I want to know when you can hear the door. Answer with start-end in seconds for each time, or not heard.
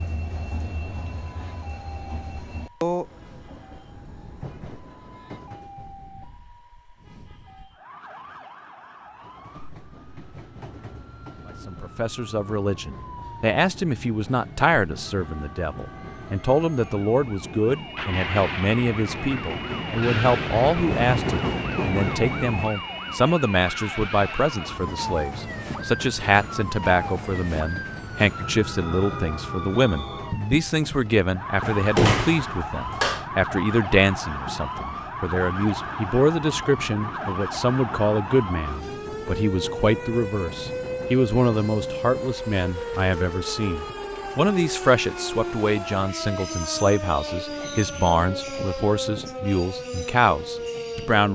31.6-33.2.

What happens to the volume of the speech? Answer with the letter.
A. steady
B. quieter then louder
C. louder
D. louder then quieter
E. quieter
A.